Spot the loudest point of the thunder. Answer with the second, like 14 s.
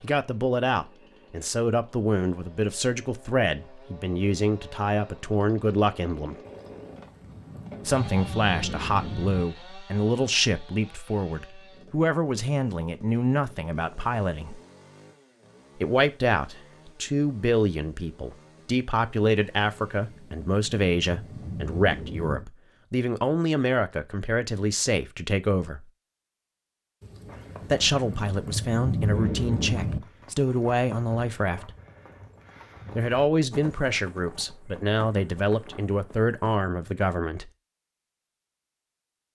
29 s.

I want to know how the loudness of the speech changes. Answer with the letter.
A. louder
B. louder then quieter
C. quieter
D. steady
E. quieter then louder
D.